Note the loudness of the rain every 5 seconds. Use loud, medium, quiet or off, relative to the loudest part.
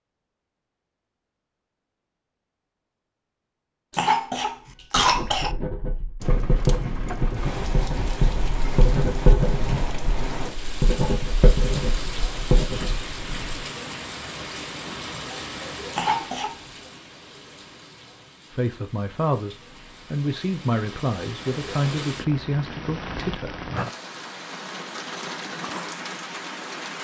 off, loud, loud, medium, loud, loud.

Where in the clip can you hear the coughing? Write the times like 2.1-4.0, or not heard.
3.9-5.5, 15.9-16.6.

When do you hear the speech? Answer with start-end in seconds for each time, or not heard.
18.5-23.6.